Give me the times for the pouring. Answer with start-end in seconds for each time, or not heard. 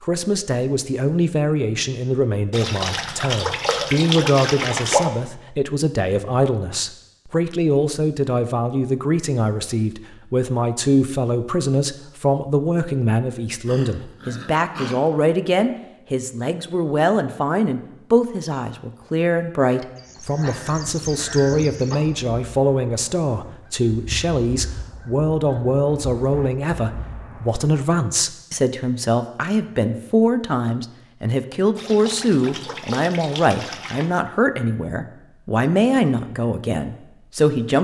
2.5-5.1, 31.8-34.1.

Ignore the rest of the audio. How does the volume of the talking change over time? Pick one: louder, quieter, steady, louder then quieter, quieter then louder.
steady.